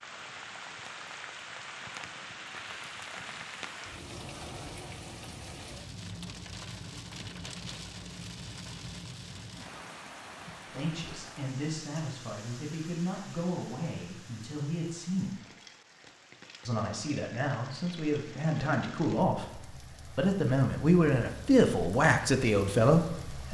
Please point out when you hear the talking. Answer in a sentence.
You can hear the talking from 10.7 to 15.4 s and from 16.6 to 23.5 s.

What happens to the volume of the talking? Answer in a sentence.
The loudness of the talking goes up.